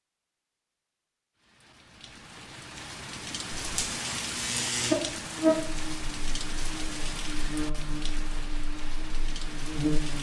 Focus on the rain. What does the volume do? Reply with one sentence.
The volume of the rain goes up, then down.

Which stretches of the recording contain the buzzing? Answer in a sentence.
The buzzing can be heard from 3.6 to 10.1 s.